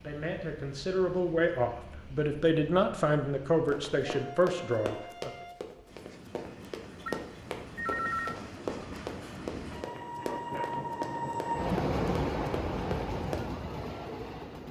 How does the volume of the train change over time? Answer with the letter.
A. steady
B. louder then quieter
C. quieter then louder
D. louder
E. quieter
D.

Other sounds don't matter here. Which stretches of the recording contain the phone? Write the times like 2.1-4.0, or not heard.
7.0-8.3.